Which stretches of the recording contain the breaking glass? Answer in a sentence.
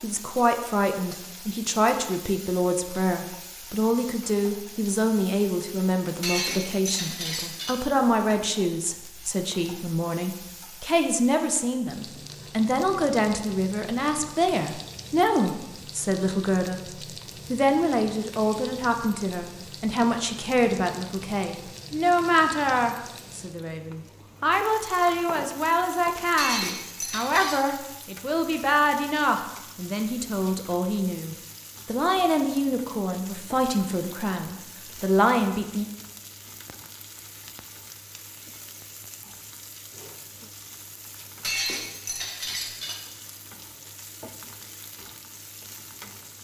You can hear the breaking glass from 6.2 to 7.8 s, from 26.4 to 27.6 s and from 41.4 to 43.0 s.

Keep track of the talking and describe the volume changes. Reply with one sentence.
The volume of the talking stays about the same.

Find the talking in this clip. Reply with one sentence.
You can hear the talking from 0.0 to 16.9 s and from 17.5 to 35.9 s.